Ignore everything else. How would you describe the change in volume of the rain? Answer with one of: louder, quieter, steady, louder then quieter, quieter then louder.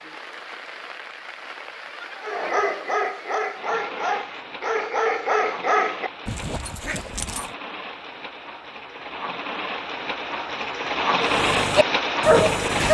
louder.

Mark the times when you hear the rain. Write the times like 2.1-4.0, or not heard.
0.0-12.8.